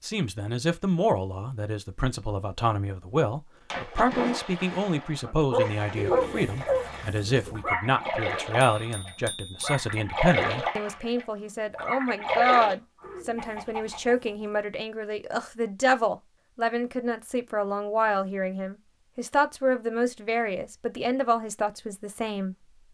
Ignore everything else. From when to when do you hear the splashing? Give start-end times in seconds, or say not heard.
3.7-12.8.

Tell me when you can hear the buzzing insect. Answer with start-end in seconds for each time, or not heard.
not heard.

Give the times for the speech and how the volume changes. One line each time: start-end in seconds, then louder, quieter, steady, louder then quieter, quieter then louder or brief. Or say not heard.
0.0-22.9 steady.